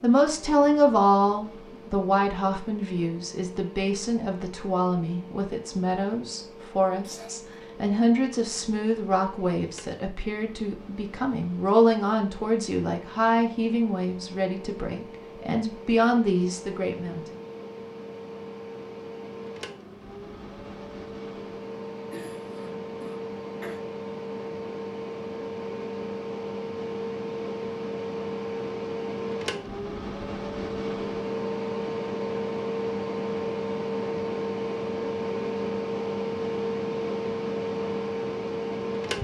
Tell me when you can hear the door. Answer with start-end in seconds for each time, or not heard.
not heard.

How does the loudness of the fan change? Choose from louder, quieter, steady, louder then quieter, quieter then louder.
louder.